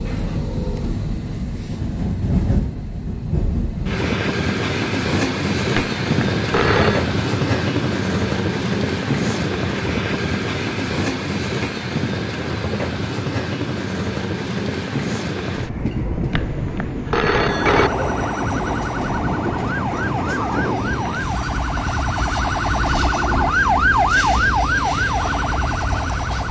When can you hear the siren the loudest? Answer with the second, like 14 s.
24 s.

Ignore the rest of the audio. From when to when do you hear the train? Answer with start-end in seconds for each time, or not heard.
0.0-26.4.